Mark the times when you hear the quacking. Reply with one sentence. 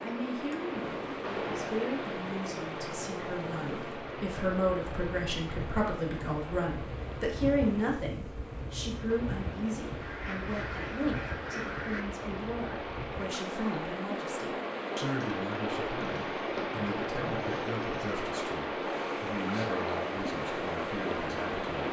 The quacking can be heard from 10.0 to 12.1 s.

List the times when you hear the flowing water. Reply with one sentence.
The flowing water can be heard from 0.0 to 21.8 s.